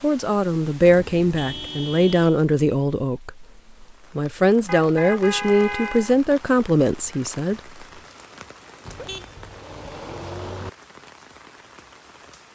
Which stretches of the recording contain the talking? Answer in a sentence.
The talking can be heard from 0.0 to 7.6 s.